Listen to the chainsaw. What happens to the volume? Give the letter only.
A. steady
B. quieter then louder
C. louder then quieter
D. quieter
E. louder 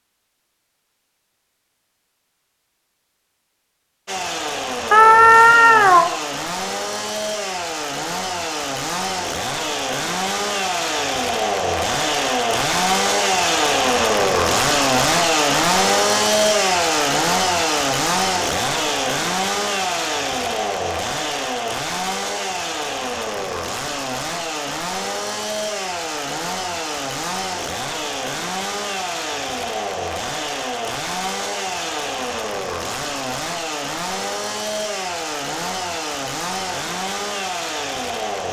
C.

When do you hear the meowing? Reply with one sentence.
You can hear the meowing from 4.9 to 6.1 s.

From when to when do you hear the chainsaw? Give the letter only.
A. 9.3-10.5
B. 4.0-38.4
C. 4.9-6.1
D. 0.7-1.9
B.